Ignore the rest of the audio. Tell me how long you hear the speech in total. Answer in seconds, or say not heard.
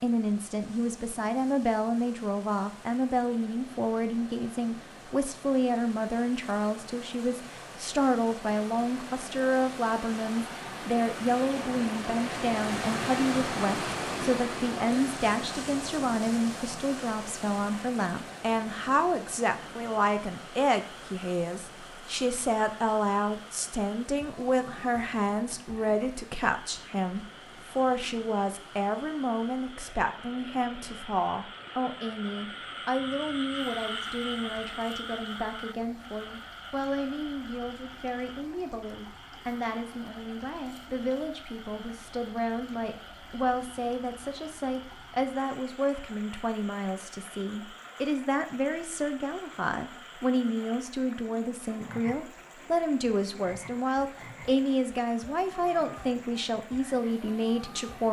58 s.